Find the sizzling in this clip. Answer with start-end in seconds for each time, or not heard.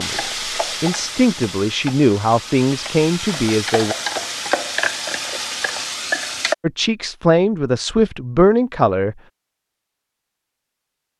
0.0-6.5.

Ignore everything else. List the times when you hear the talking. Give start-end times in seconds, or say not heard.
0.0-4.0, 6.6-9.2.